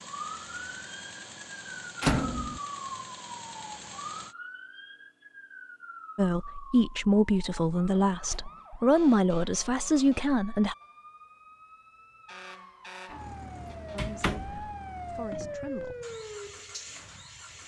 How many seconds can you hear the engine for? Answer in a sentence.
You can hear the engine for 9 seconds altogether.